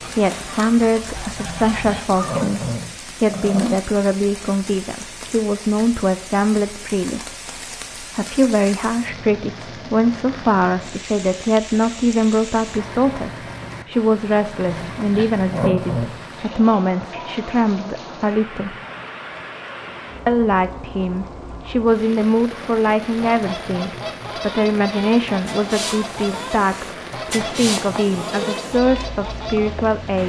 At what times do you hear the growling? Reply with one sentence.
You can hear the growling from 1.4 to 3.9 s, from 14.7 to 16.1 s and from 28.2 to 28.7 s.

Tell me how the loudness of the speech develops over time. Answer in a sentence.
The volume of the speech stays about the same.